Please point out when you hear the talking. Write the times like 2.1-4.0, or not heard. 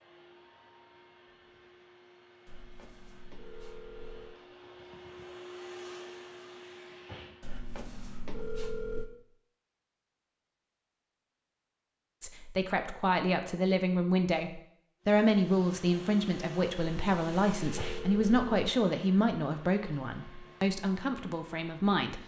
12.2-22.2.